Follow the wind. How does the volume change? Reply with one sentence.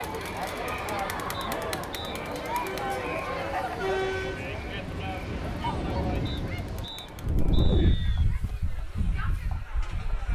The loudness of the wind goes up, then down.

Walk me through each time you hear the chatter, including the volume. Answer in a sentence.
The chatter can be heard from 0.0 to 10.3 s, getting quieter.